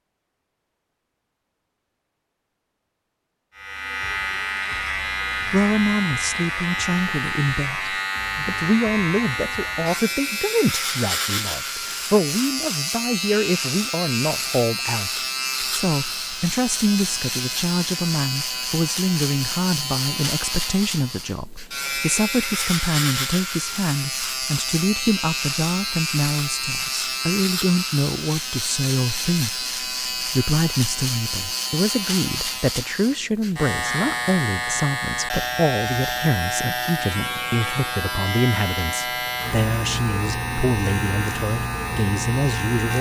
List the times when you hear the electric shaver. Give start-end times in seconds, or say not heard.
3.5-42.9.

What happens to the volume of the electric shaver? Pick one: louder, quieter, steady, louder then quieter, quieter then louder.
steady.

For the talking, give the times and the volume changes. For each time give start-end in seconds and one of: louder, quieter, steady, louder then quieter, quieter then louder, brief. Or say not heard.
5.5-42.9 steady.